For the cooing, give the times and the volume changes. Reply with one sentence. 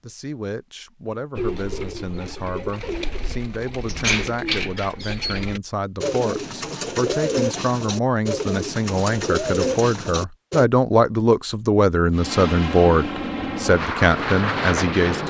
You can hear the cooing from 1.4 to 10.7 s, getting louder.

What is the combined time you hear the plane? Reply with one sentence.
The plane can be heard for 3 seconds in total.